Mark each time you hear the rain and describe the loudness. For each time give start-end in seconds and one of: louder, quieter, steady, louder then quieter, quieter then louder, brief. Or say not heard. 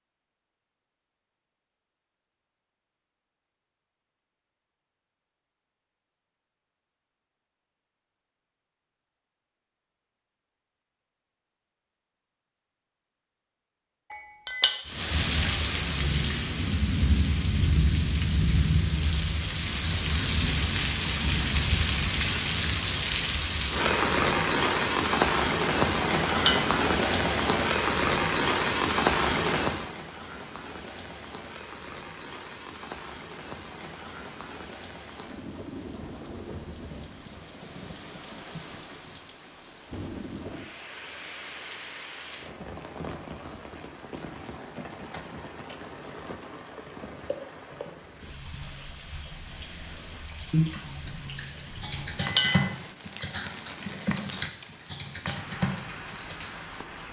14.8-57.0 quieter.